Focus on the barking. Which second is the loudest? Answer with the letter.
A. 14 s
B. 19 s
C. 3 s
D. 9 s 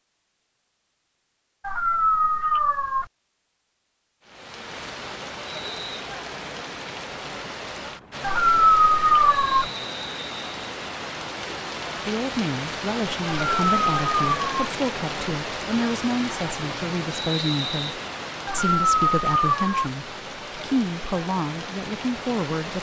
D.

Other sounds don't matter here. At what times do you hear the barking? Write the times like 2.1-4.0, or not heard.
1.6-3.0, 8.2-9.7, 13.2-14.7, 18.4-19.9.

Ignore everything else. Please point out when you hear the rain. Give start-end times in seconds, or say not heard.
4.2-22.7.